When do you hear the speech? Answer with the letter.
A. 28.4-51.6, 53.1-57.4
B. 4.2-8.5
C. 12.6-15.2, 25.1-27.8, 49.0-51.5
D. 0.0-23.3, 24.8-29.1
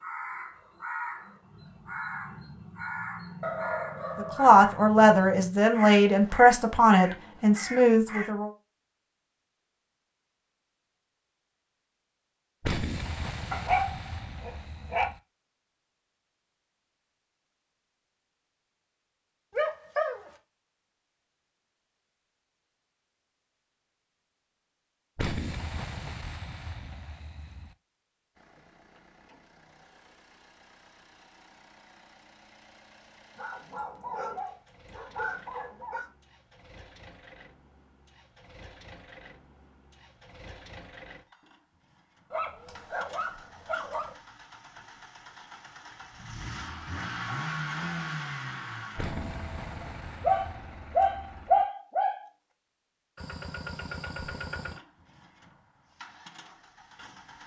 B.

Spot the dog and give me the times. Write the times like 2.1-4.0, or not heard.
3.4-4.5, 13.5-15.1, 19.5-20.3, 33.4-36.1, 42.3-44.1, 50.2-52.2.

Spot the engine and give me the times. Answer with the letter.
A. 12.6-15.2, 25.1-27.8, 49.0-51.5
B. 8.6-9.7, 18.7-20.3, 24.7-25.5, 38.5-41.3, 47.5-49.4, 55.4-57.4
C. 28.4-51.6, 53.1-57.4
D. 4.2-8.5
C.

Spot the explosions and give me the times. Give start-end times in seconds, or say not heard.
12.6-15.2, 25.1-27.8, 49.0-51.5.